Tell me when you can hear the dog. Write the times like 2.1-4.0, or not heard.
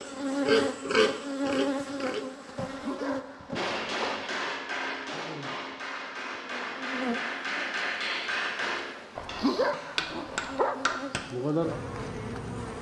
2.6-4.2, 9.2-11.0.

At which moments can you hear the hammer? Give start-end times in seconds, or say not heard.
3.5-11.3.